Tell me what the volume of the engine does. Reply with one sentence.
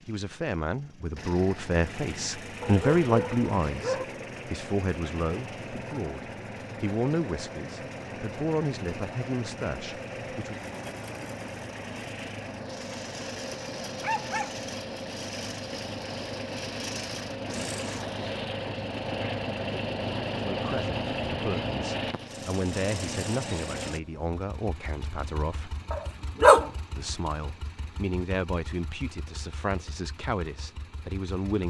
The loudness of the engine goes up, then down.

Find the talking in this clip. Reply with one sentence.
You can hear the talking from 0.1 to 10.7 s, from 20.4 to 25.8 s and from 26.9 to 31.6 s.